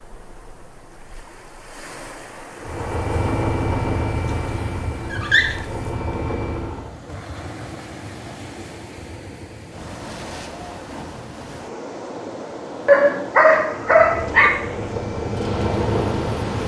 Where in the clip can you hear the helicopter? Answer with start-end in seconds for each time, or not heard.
2.6-7.0, 13.9-16.6.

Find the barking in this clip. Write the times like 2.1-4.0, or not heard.
4.2-5.5, 12.8-14.5.